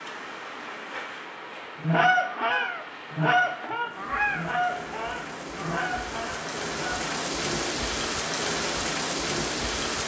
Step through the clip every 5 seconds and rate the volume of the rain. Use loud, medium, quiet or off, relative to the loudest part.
medium, loud.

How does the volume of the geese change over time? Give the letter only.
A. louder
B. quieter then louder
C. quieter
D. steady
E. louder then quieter
C.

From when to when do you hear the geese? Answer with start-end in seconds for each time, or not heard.
1.8-7.2.